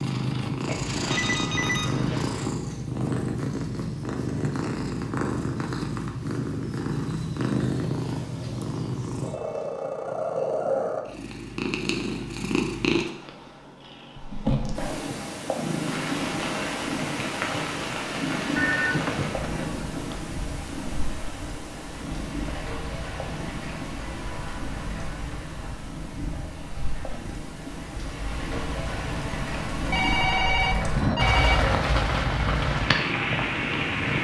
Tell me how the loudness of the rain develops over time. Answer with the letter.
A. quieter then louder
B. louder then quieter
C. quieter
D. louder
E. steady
A.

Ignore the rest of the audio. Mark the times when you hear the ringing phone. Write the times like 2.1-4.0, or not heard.
0.7-2.5, 18.6-20.2, 29.9-31.6.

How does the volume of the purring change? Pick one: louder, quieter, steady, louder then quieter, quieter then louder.
quieter.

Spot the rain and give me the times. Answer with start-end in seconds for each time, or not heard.
15.7-34.1.